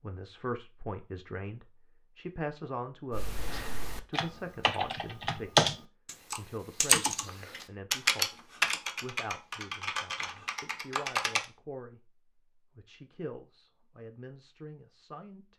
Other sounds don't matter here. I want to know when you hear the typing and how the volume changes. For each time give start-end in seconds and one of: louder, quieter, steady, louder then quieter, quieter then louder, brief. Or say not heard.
3.1-11.4 louder then quieter.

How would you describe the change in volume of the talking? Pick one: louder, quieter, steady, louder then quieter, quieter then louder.
quieter.